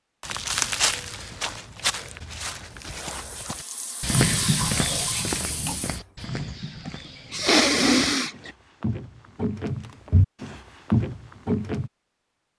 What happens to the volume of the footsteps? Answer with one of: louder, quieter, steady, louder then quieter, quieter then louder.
quieter then louder.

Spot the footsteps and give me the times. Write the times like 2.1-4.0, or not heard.
0.2-11.9.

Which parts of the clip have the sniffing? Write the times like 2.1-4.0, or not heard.
6.8-8.5.